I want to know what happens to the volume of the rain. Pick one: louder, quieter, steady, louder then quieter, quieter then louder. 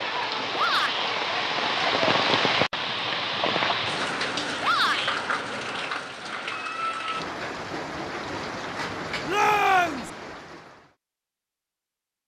quieter.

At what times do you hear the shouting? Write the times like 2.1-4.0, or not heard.
0.6-1.1, 4.6-5.2, 9.2-10.1.